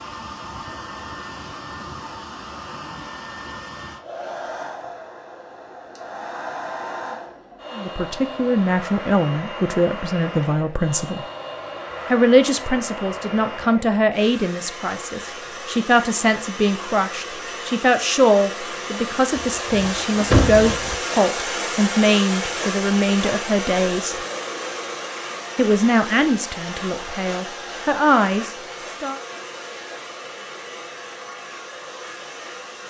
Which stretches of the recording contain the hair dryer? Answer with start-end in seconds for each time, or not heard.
0.0-32.8.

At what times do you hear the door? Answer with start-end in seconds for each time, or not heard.
19.4-20.9.